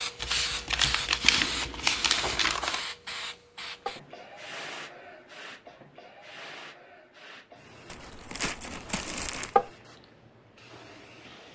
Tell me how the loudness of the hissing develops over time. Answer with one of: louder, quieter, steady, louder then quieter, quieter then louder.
quieter.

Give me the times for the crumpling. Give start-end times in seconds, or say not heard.
0.2-2.8, 7.9-9.6.